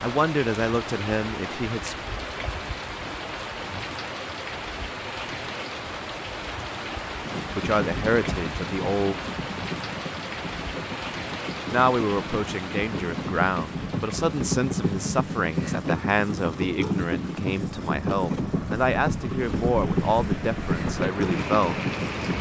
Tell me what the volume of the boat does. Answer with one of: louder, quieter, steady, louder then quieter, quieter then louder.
louder.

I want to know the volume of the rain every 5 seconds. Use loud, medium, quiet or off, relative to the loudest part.
loud, loud, loud, medium, loud.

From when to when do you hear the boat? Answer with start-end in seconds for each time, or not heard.
7.2-22.3.